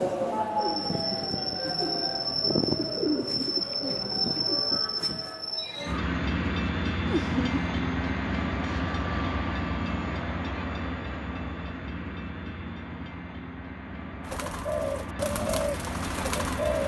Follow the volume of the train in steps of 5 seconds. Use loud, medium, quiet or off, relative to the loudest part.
loud, loud, medium, medium.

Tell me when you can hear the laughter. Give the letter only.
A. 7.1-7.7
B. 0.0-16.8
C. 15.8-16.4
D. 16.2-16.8
A.